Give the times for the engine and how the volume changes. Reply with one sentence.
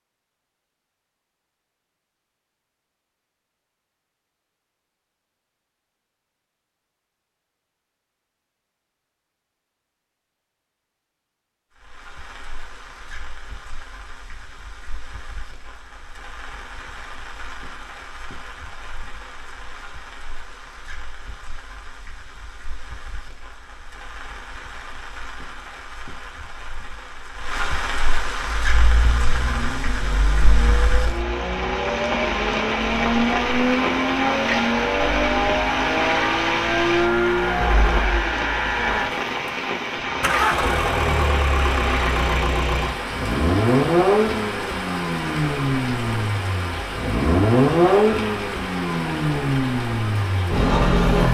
You can hear the engine from 28.4 to 51.3 s, getting louder.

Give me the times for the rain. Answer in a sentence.
The rain can be heard from 11.8 to 51.3 s.